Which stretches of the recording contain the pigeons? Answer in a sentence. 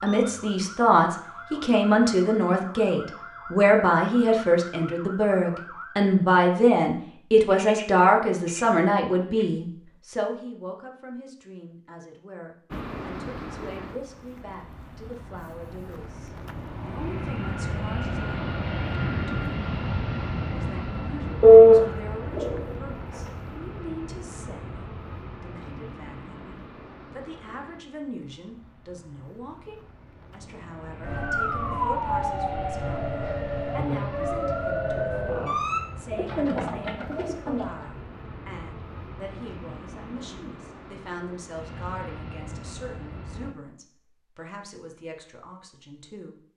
The pigeons can be heard from 7.5 to 9.4 s, from 21.4 to 22.8 s and from 36.1 to 37.9 s.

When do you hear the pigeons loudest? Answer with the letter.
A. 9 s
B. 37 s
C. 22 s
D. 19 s
C.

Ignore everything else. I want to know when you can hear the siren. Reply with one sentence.
The siren can be heard from 0.0 to 6.0 s and from 31.0 to 35.8 s.